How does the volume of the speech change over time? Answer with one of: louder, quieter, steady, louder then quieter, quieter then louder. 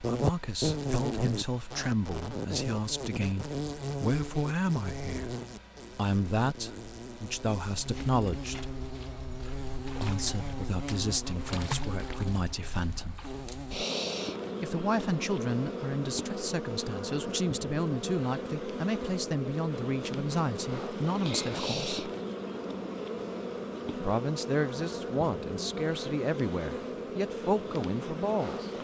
steady.